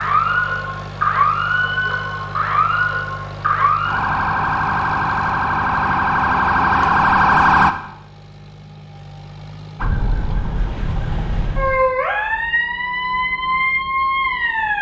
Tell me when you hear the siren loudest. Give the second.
7 s.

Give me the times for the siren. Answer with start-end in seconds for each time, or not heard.
0.0-7.8, 9.8-14.7.